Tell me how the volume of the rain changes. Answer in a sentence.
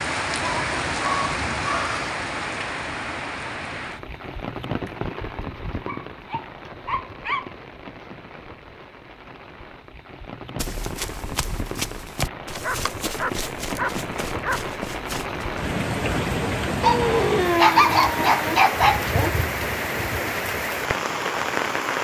The volume of the rain goes down, then up.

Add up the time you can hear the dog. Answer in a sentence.
The dog can be heard for 8 seconds in total.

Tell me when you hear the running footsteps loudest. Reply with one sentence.
The volume of the running footsteps peaks at 12 seconds.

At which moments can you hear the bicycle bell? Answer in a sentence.
You can't hear the bicycle bell here.